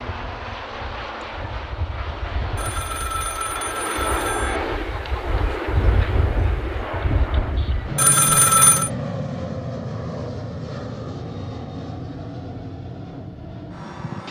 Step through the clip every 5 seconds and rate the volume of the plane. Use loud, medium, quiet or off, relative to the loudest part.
loud, loud, medium.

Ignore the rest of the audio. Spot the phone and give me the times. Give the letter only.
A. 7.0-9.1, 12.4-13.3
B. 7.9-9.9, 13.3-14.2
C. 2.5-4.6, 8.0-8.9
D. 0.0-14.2
C.